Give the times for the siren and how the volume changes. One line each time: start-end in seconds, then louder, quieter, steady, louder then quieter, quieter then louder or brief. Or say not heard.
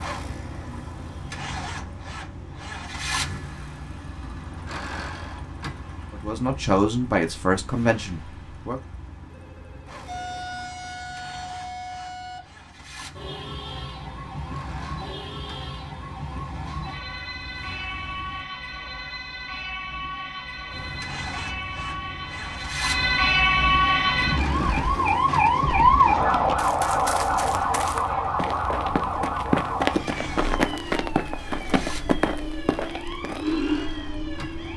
10.1-34.7 louder then quieter.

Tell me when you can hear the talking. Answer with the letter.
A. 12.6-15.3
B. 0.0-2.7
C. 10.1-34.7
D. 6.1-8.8
D.